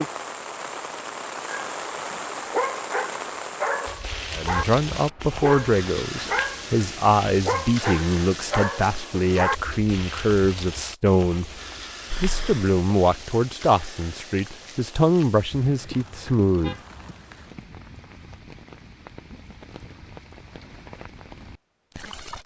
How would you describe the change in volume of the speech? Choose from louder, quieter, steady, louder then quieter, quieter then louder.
steady.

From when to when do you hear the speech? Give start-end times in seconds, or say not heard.
4.3-11.5, 12.2-16.8.